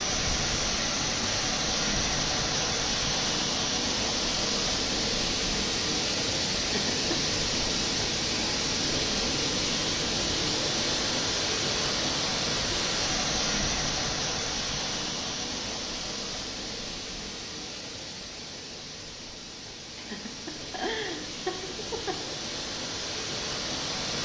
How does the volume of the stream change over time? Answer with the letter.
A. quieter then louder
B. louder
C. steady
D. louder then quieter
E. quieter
E.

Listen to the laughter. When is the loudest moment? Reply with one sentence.
The loudest moment of the laughter is at 21 seconds.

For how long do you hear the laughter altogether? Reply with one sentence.
You can hear the laughter for 3 seconds altogether.